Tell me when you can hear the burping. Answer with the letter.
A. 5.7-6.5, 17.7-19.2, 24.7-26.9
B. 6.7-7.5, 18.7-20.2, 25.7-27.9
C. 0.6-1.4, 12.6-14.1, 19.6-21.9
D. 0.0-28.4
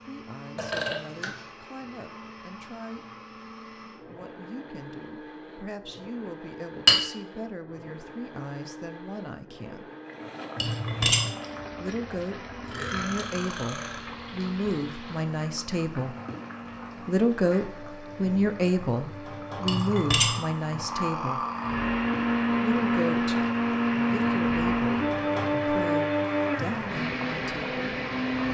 C.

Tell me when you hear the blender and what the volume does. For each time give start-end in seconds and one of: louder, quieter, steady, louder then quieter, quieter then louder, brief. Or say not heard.
0.0-28.4 louder.